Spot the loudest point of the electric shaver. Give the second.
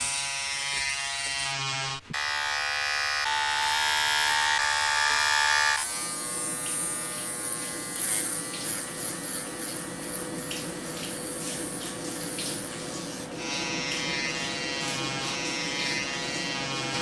5 s.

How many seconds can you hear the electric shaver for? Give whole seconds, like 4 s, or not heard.
17 s.